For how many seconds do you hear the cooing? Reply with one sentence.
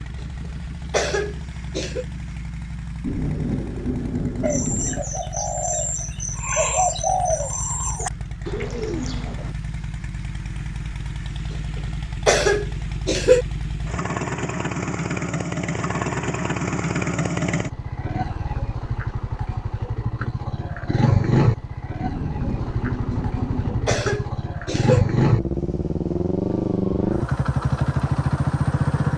The cooing can be heard for 5 seconds in total.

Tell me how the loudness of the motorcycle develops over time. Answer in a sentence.
The volume of the motorcycle goes up.